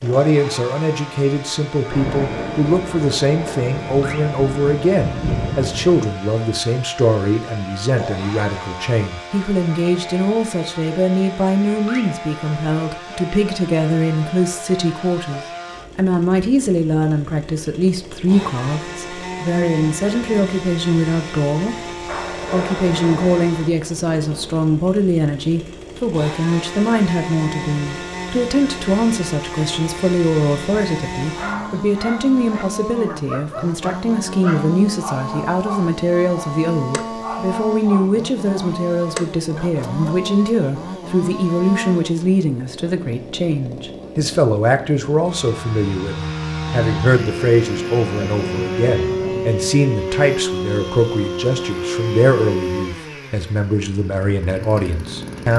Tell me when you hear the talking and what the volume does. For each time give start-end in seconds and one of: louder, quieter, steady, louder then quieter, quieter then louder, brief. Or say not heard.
0.0-55.5 steady.